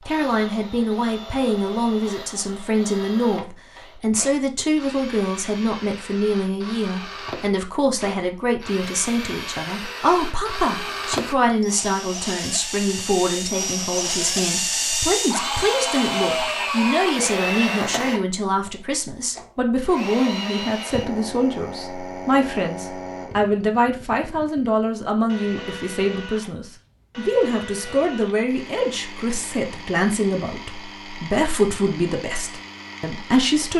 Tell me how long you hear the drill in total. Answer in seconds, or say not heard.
34 s.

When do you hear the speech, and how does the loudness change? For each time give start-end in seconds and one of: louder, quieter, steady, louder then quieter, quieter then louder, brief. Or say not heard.
0.1-33.7 steady.